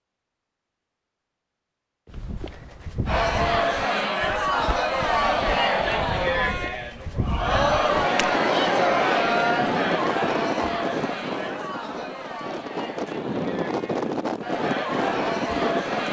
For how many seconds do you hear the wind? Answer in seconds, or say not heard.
8 s.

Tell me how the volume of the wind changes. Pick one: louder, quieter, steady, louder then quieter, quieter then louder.
quieter then louder.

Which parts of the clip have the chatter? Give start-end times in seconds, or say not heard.
3.0-16.0.